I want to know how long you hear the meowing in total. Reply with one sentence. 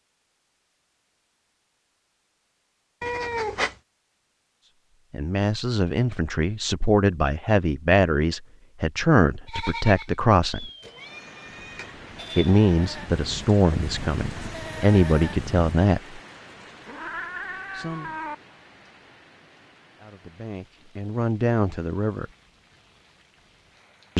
The meowing can be heard for 4 seconds in total.